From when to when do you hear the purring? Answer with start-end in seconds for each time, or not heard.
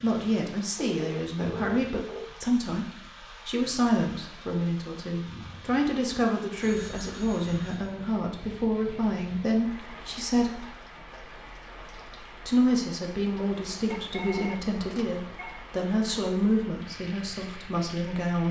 not heard.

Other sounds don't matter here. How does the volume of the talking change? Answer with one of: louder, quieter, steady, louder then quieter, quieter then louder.
steady.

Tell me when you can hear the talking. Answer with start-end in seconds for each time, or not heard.
0.0-10.7, 12.4-18.4.